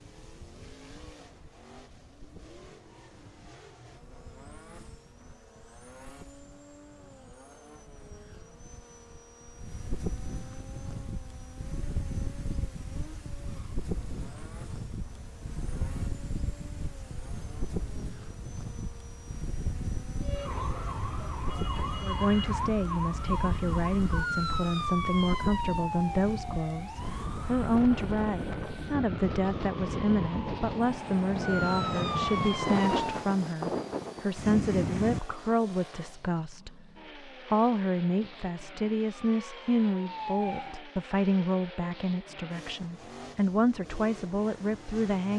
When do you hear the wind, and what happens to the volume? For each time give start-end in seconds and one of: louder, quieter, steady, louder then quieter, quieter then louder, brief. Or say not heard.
0.0-35.5 louder.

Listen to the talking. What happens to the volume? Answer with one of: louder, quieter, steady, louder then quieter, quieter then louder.
steady.